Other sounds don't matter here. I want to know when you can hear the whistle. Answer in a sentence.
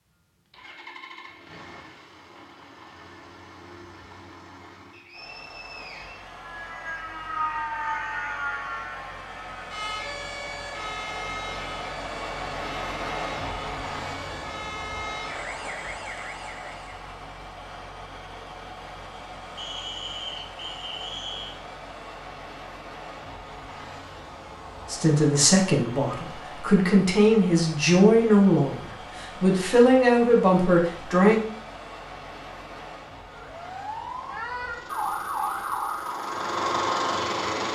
You can hear the whistle from 4.9 to 6.4 s and from 19.6 to 21.6 s.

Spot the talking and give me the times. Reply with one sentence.
You can hear the talking from 24.9 to 31.4 s.